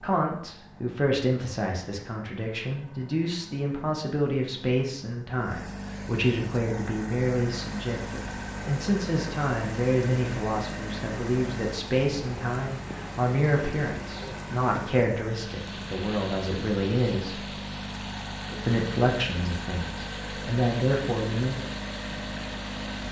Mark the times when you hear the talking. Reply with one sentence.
You can hear the talking from 0.0 to 17.4 s and from 18.6 to 21.6 s.